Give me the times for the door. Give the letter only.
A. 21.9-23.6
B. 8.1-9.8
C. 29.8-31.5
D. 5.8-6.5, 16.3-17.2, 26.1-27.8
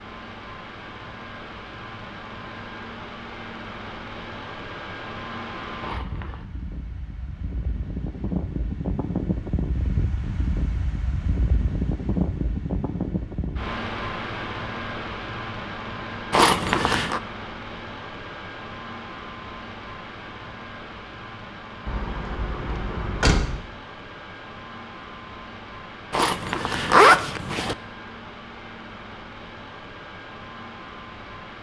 A.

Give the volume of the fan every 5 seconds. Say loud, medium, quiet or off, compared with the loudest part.
medium, loud, loud, medium, medium, medium, medium.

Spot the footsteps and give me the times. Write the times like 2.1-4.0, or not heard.
not heard.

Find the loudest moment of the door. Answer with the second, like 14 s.
23 s.